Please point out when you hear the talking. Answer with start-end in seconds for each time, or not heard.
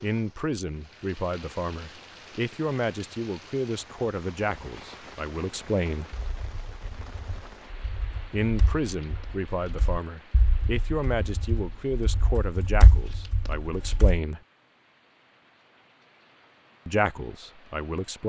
0.0-6.1, 8.3-14.4, 16.9-18.2.